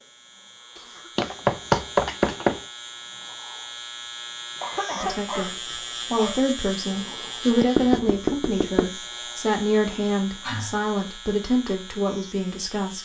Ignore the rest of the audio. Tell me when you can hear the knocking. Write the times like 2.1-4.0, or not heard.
1.1-2.6, 7.8-8.9.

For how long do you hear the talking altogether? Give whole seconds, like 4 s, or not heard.
8 s.